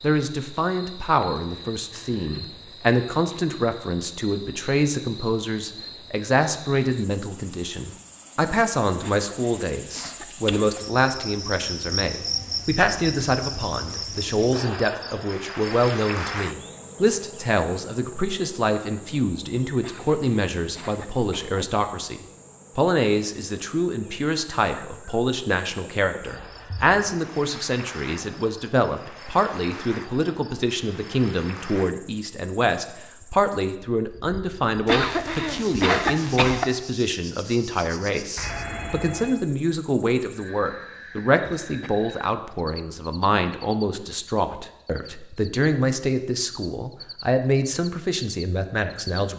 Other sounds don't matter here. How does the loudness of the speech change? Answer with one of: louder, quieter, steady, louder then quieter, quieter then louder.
steady.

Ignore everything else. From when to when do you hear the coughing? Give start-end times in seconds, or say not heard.
9.0-10.8, 19.8-21.6, 34.9-36.6.